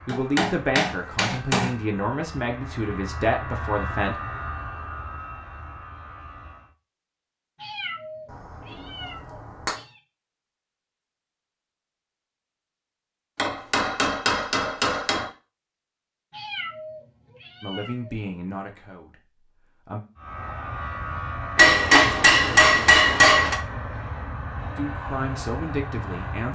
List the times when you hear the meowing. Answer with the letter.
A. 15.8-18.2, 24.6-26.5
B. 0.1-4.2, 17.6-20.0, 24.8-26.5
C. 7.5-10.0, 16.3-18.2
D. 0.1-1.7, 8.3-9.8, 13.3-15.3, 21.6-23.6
C.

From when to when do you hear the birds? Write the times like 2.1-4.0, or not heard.
not heard.